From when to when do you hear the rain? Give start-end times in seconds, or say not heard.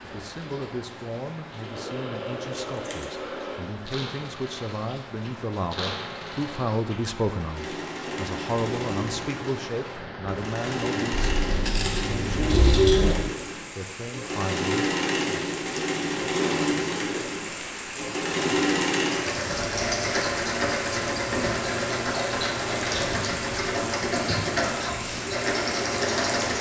0.0-26.5.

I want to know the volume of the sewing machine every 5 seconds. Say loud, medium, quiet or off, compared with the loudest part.
medium, medium, loud, loud, loud, loud.